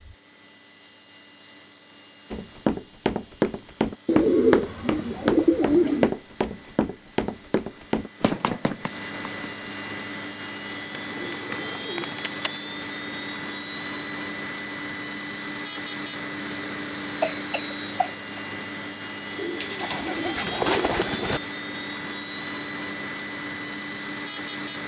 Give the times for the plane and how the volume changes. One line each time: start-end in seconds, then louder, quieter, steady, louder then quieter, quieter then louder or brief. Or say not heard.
0.0-24.8 louder.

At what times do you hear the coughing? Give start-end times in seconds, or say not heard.
17.2-18.4.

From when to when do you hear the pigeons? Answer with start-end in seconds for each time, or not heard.
4.0-6.1, 10.9-12.5, 19.4-21.4.